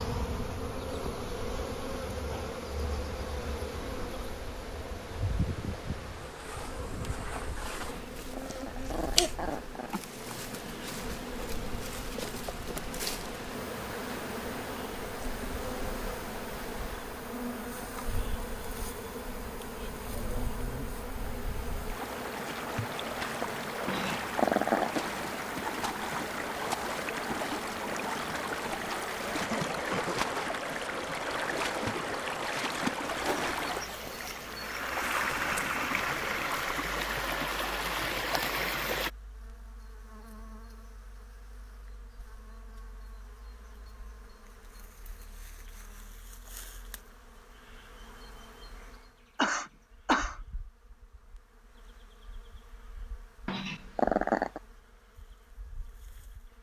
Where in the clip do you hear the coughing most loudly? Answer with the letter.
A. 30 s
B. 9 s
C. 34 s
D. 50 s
D.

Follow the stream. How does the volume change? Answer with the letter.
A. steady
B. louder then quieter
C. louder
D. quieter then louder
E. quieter
C.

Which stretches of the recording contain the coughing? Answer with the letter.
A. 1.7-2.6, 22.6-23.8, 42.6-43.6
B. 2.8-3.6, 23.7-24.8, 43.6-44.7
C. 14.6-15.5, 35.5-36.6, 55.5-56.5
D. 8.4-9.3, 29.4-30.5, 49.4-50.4
D.